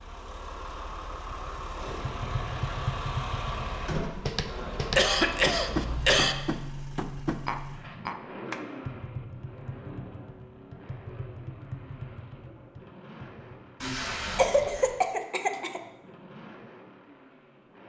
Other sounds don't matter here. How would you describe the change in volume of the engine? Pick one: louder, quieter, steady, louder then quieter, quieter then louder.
quieter.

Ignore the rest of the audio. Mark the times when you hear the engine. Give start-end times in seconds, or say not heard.
0.0-17.8.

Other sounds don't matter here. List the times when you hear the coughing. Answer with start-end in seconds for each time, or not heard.
4.9-6.3, 13.8-15.8.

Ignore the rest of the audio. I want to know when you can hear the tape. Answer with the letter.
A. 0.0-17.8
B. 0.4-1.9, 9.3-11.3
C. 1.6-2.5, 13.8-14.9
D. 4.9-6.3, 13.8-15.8
C.